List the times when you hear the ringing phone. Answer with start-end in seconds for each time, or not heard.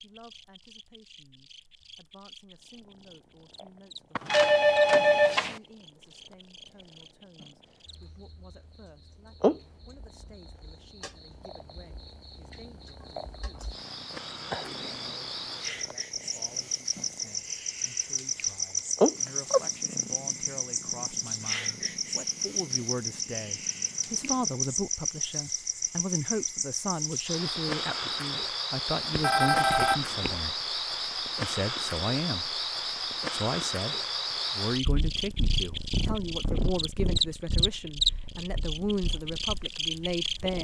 4.2-5.6, 29.1-30.4.